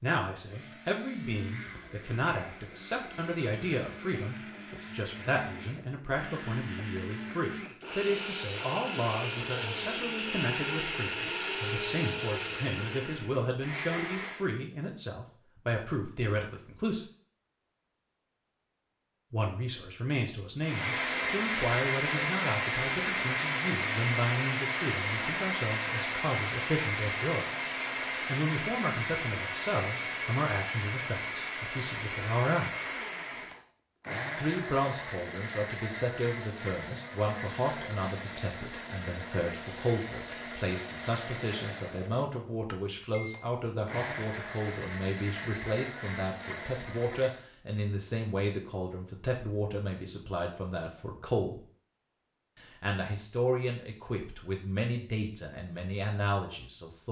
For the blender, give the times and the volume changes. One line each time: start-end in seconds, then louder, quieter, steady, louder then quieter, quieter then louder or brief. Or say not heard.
0.0-14.5 louder
20.6-47.4 quieter.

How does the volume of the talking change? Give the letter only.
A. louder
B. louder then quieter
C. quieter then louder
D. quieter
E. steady
E.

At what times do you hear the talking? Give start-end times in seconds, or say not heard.
0.0-17.1, 19.3-32.7, 34.4-51.6, 52.5-57.0.